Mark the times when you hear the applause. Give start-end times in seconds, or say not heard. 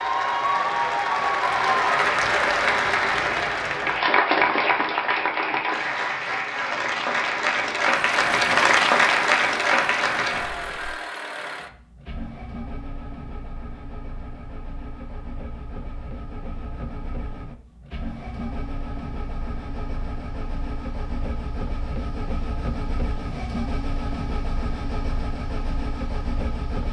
0.0-10.9.